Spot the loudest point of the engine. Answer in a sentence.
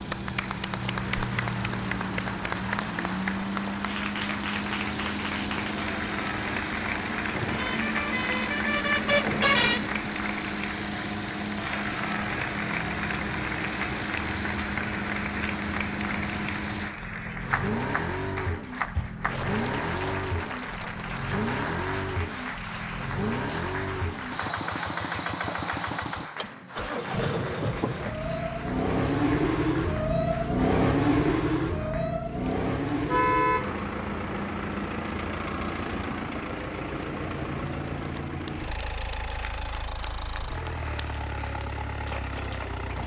The loudest moment of the engine is at 31 seconds.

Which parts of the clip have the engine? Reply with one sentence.
You can hear the engine from 0.0 to 43.0 s.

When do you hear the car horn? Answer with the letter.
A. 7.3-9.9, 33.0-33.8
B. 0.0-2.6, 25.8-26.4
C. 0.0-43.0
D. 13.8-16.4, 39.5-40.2
A.